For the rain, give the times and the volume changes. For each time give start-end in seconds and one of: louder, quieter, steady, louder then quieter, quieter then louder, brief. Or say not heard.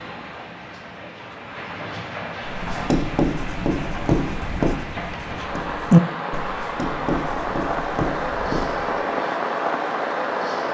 0.0-10.6 louder.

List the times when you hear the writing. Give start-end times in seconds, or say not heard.
2.5-8.9.